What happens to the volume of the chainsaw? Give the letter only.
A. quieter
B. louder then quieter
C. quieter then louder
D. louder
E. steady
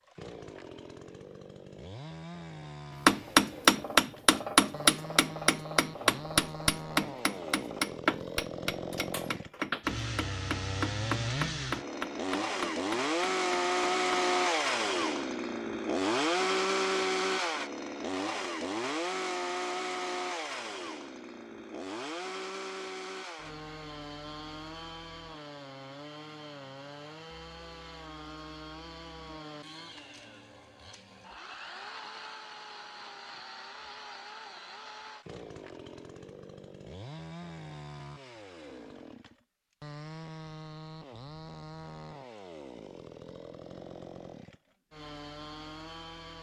B.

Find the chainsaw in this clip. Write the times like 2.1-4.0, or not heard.
0.0-46.3.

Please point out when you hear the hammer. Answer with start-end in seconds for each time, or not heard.
3.0-14.3.